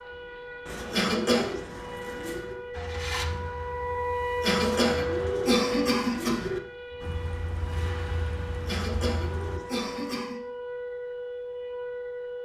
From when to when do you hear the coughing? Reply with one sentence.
You can hear the coughing from 0.9 to 1.5 s, from 4.4 to 6.5 s and from 8.7 to 10.4 s.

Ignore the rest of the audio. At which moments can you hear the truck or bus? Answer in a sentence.
The truck or bus can be heard from 2.7 to 5.3 s and from 7.0 to 9.6 s.